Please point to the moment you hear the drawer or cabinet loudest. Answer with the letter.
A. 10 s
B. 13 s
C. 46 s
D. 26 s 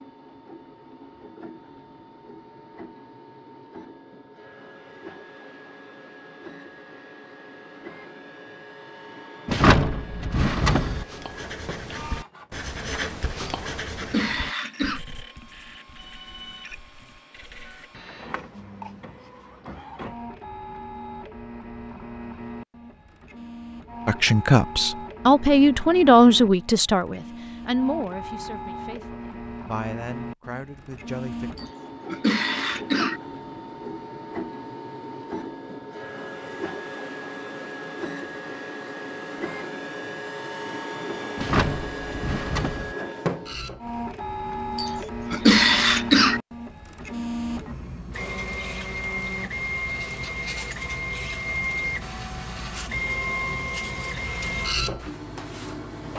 A.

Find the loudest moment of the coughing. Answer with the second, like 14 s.
46 s.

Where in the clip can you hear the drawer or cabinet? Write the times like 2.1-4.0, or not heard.
9.4-11.1, 41.4-43.0.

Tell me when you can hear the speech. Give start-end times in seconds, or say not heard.
24.1-31.5.